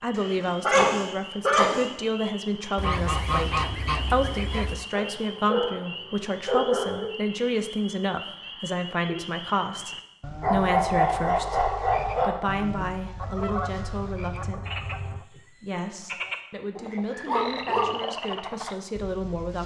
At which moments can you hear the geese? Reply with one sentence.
The geese can be heard from 2.8 to 4.8 s and from 13.2 to 15.2 s.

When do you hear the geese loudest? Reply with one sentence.
The loudest moment of the geese is at 3 seconds.